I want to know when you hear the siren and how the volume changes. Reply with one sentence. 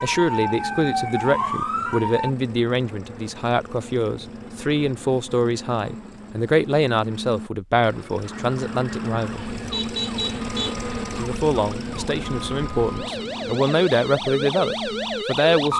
The siren can be heard briefly from 0.0 to 2.3 s; and from 8.2 to 15.7 s, getting louder.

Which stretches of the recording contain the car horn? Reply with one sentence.
You can hear the car horn from 9.7 to 10.8 s.